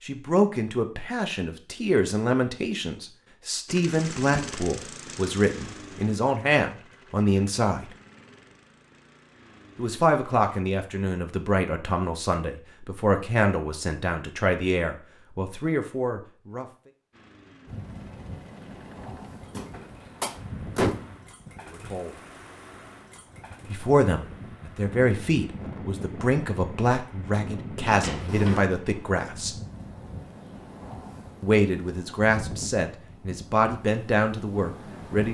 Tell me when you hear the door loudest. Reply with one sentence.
The loudest moment of the door is at 21 seconds.